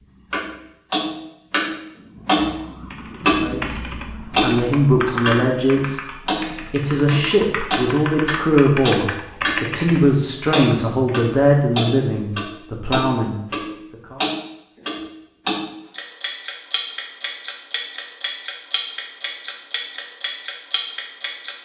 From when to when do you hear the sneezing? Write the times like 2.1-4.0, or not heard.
not heard.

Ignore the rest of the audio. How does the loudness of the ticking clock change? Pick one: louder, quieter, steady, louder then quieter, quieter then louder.
quieter.